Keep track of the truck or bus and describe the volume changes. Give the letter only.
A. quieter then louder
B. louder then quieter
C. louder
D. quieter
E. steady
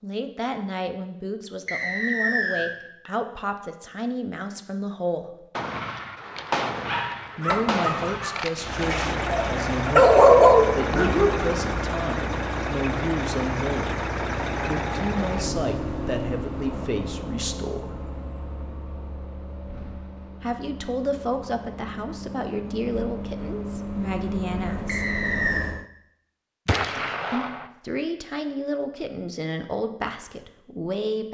A.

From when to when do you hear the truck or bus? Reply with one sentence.
The truck or bus can be heard from 8.6 to 25.9 s.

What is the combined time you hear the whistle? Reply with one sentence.
The whistle can be heard for 2 seconds in total.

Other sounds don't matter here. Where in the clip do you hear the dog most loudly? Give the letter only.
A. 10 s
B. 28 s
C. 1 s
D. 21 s
A.